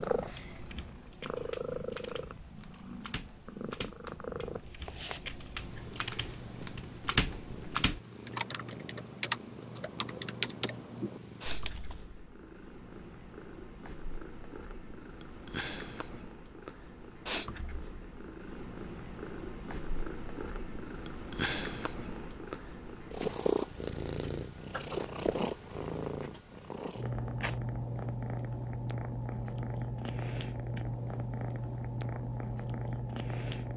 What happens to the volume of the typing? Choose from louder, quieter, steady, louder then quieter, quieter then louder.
louder.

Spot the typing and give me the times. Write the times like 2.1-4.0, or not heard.
0.1-12.2.